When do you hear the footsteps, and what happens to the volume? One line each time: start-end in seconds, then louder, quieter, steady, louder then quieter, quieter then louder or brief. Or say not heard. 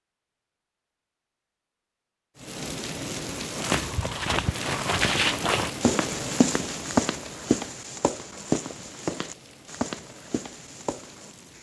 3.5-11.3 quieter.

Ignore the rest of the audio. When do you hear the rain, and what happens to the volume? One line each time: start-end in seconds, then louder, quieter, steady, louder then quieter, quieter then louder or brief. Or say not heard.
2.4-11.5 quieter.